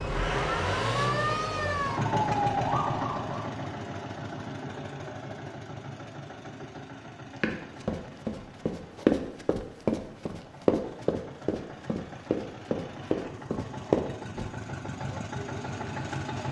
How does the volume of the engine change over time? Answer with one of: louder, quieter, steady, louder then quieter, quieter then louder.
quieter then louder.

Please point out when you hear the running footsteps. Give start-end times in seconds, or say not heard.
7.3-14.4.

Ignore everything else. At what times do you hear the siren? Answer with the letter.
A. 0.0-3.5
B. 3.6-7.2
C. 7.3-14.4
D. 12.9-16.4
A.